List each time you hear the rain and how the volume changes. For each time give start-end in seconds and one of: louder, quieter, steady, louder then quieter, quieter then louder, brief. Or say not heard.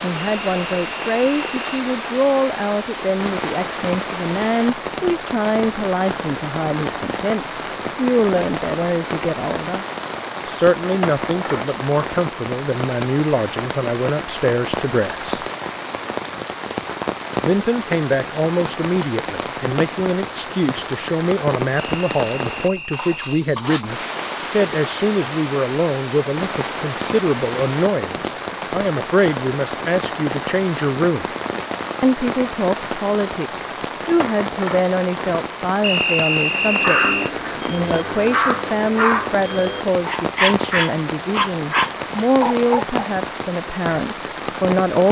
0.0-45.0 steady.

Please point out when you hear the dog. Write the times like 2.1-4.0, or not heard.
36.5-43.1.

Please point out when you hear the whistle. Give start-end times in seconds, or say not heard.
0.1-1.7, 21.8-23.4, 35.8-37.3.